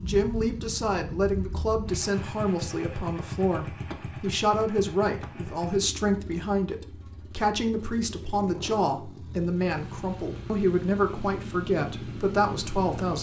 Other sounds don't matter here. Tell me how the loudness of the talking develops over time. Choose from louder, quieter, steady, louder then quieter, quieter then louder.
steady.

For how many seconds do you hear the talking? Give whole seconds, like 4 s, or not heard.
13 s.